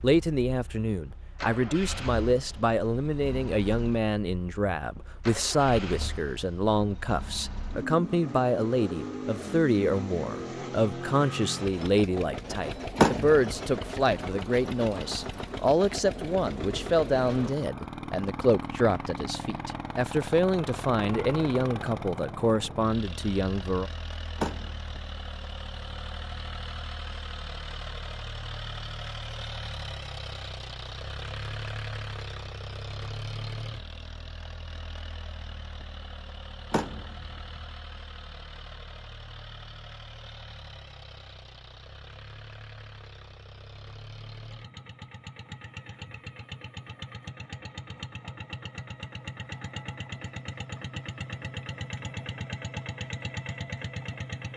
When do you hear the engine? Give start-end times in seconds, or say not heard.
0.0-54.5.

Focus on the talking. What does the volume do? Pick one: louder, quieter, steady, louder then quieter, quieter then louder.
steady.